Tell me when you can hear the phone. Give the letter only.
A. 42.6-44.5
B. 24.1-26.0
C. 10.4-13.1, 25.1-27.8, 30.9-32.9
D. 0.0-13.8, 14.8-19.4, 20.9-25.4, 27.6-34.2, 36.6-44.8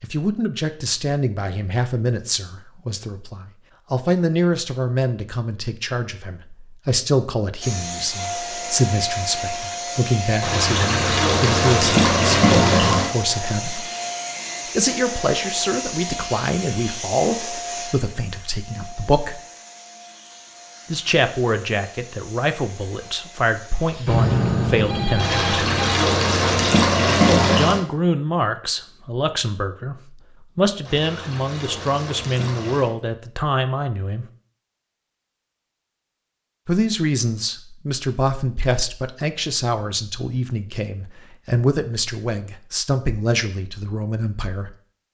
B.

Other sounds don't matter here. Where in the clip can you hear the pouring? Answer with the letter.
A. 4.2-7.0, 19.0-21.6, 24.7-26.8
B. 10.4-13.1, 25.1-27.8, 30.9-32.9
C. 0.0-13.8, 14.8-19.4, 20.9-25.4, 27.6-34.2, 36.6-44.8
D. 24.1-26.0
B.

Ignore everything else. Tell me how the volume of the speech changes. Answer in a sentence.
The volume of the speech stays about the same.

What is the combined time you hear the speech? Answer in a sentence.
You can hear the speech for 38 seconds altogether.